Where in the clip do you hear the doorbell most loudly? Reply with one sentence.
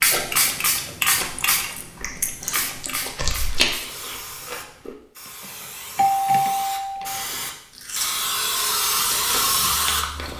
The volume of the doorbell peaks at 6 seconds.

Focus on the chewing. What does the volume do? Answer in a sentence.
The volume of the chewing goes up, then down.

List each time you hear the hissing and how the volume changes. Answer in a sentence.
You can hear the hissing from 0.0 to 10.3 s, getting quieter then louder.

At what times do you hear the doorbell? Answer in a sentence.
The doorbell can be heard from 2.2 to 3.2 s and from 5.4 to 7.2 s.